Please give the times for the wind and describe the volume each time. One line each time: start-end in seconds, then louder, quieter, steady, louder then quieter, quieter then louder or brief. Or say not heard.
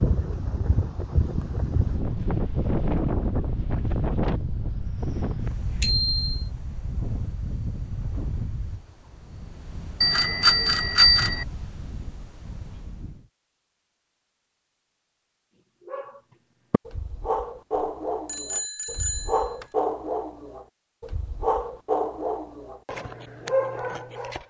0.0-13.2 quieter.